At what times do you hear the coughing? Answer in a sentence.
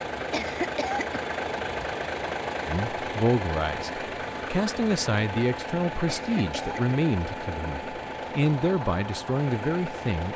The coughing can be heard from 0.3 to 1.2 s and from 6.0 to 7.0 s.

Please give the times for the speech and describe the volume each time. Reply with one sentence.
You can hear the speech from 2.6 to 10.3 s, at a steady volume.